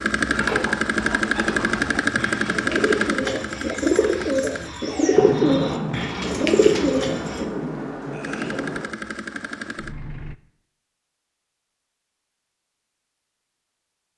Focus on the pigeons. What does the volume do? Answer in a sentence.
The volume of the pigeons goes up.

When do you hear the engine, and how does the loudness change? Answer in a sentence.
You can hear the engine from 0.0 to 4.7 s, getting quieter; and briefly from 8.2 to 10.3 s.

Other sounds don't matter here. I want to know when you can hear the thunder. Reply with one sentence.
The thunder can be heard from 5.1 to 8.8 s.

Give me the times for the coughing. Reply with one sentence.
The coughing can't be heard in this clip.